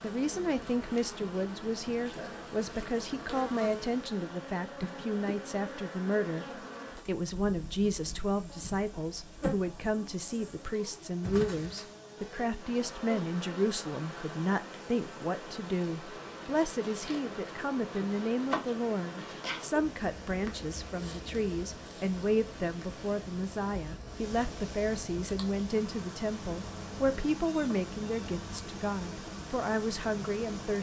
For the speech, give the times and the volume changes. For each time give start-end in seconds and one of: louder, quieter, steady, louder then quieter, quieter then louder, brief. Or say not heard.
0.0-6.5 steady
7.0-30.7 steady.